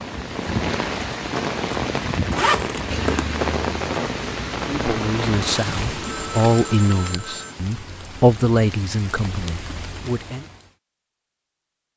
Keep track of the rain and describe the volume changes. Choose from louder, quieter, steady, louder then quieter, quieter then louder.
quieter.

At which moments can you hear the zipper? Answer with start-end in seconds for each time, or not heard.
1.7-3.2.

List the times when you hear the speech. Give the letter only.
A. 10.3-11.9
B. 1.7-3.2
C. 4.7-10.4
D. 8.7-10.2
C.